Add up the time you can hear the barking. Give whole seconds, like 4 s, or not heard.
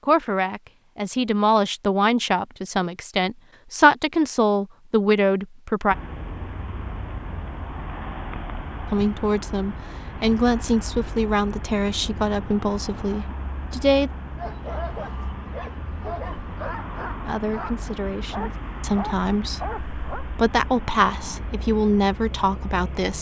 6 s.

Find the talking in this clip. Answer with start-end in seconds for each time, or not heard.
0.0-6.0, 8.9-14.1, 17.2-23.1.